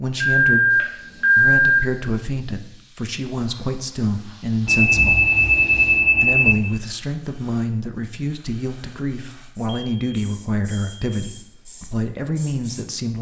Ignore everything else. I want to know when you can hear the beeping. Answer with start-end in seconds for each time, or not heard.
0.2-1.8, 4.7-6.5, 9.7-11.2.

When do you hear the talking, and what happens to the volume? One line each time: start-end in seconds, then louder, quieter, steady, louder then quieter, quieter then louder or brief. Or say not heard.
0.0-13.1 steady.